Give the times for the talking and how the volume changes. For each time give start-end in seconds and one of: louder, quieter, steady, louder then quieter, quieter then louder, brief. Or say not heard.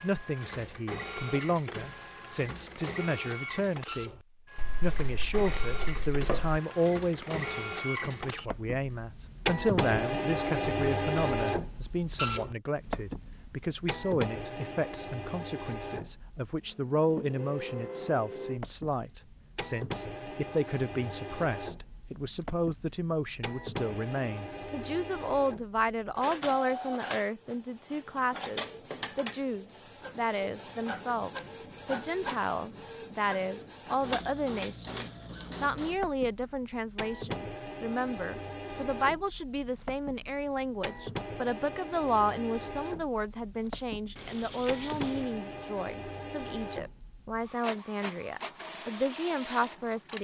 0.0-50.1 steady.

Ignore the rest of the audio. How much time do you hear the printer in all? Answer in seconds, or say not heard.
50 s.